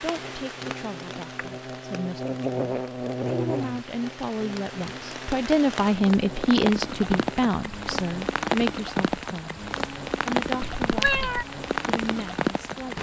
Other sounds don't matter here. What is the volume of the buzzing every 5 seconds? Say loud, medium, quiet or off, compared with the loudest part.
loud, medium, off.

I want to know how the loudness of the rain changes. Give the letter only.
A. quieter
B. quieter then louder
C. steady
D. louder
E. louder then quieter
D.